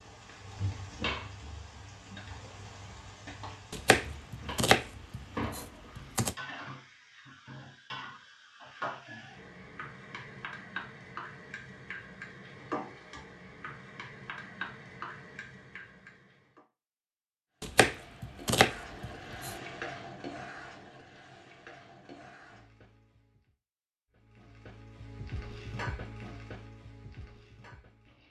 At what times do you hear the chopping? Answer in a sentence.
The chopping can be heard from 3.7 to 6.3 s and from 17.6 to 19.6 s.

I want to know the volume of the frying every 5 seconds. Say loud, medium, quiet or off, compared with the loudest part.
loud, loud, loud, loud, medium, loud.